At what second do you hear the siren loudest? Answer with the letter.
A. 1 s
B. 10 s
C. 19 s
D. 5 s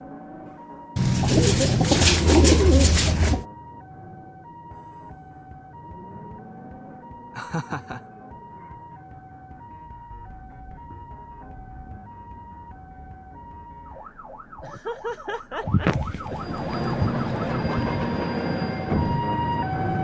C.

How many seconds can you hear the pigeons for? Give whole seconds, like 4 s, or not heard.
5 s.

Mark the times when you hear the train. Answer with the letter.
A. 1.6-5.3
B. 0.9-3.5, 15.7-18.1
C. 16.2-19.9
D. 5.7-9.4
C.